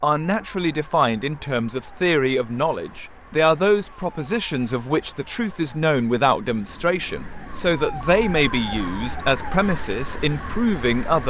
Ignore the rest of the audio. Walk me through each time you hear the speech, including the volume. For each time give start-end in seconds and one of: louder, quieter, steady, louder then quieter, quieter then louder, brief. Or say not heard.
0.0-11.2 steady.